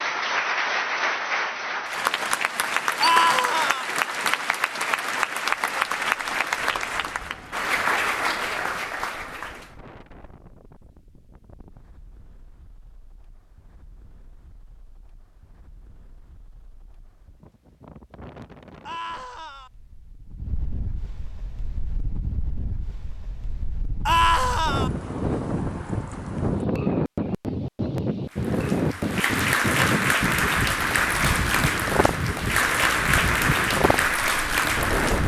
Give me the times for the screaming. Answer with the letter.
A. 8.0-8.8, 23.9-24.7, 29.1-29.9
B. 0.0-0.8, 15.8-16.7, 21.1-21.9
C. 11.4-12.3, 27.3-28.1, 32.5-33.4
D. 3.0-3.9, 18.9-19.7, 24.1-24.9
D.